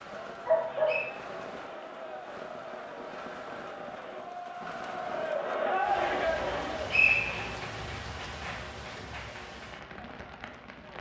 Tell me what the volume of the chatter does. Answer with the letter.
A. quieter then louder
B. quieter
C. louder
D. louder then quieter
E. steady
C.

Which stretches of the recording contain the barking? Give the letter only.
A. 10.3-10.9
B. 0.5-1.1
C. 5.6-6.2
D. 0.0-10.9
B.